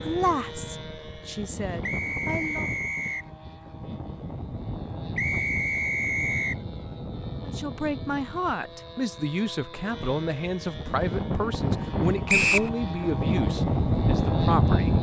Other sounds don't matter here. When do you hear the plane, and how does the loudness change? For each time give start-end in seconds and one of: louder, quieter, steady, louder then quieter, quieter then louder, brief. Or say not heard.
0.0-14.9 louder.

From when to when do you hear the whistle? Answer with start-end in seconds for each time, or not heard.
1.8-3.2, 5.2-6.5, 12.2-12.7.